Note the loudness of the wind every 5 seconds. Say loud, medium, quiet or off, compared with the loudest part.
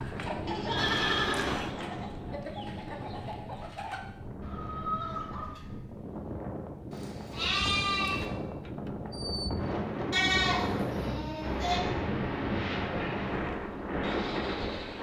medium, medium, loud.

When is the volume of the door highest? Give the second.
1 s.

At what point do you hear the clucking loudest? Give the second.
5 s.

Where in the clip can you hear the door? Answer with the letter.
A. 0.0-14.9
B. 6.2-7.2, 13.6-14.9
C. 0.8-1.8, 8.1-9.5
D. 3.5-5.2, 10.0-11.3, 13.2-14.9
C.